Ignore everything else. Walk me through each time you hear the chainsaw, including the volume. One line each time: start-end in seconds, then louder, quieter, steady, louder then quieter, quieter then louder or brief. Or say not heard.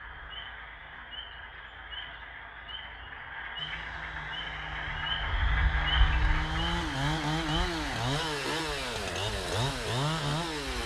3.5-10.8 louder.